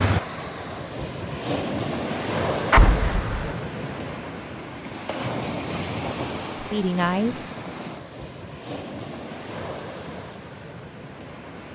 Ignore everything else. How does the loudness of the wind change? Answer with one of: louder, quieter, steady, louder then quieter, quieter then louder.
quieter.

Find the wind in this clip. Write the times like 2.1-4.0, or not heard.
0.0-11.7.